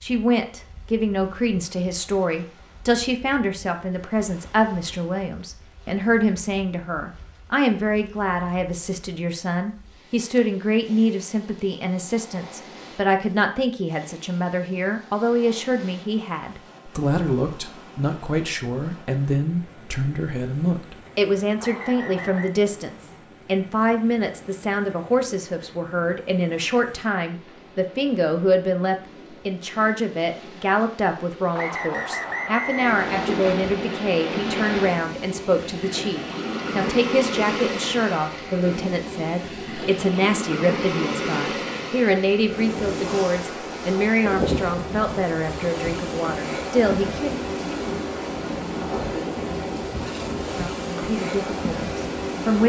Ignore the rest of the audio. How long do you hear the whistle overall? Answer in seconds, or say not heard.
3 s.